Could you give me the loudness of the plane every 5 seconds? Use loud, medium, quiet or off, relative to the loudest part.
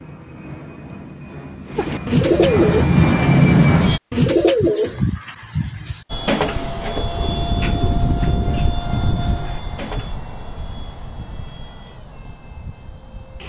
loud, medium, quiet.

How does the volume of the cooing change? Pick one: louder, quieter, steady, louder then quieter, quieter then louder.
quieter.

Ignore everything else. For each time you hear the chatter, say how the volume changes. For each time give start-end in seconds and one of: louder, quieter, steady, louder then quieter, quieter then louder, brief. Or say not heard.
not heard.